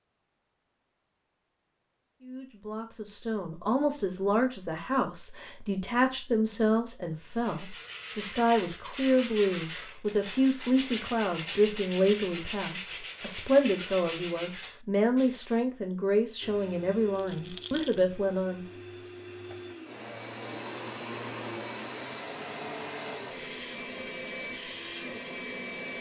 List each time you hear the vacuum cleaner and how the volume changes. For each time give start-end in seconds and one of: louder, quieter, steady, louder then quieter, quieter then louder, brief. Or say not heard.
16.4-25.9 louder.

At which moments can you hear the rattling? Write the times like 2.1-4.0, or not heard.
17.1-18.0.